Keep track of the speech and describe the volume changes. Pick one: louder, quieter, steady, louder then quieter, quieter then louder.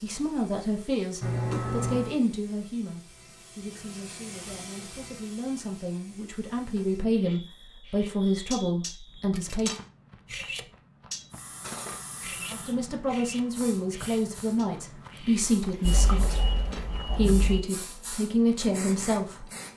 quieter then louder.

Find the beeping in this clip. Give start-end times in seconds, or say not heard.
1.2-2.1, 6.8-9.4, 15.8-17.6.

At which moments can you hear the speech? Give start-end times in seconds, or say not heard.
0.0-9.8, 12.5-19.4.